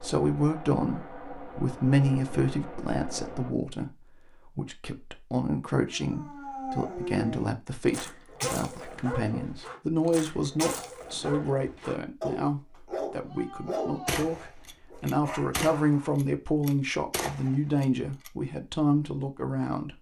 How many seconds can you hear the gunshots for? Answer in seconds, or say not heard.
4 s.